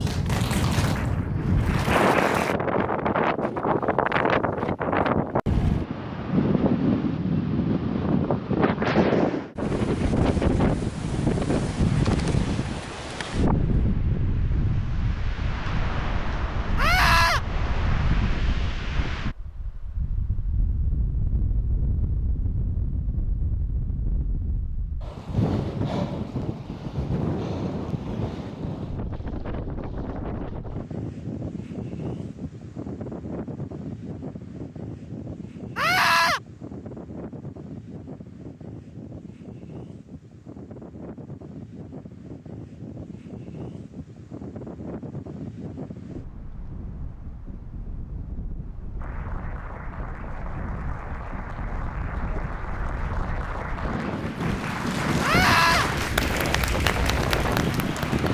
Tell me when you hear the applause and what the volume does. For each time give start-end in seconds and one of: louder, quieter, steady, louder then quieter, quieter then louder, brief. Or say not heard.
0.0-2.5 brief
49.0-58.2 louder.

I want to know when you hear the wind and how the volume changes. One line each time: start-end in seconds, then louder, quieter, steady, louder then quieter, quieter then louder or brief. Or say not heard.
0.0-58.2 quieter then louder.